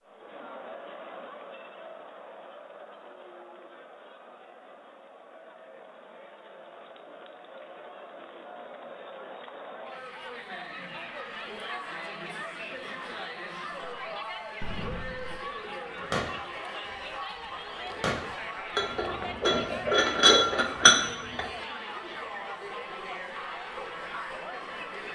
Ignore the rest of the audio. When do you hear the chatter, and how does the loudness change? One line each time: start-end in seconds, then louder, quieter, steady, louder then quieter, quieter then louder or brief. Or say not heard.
0.0-25.1 louder.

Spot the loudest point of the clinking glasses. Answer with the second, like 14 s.
21 s.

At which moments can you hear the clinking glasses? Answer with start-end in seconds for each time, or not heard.
18.8-21.4.